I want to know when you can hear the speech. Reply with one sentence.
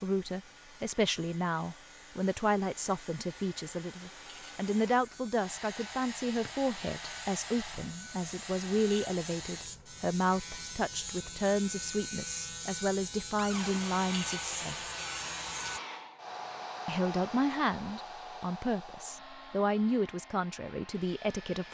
You can hear the speech from 0.0 to 14.8 s and from 16.9 to 21.6 s.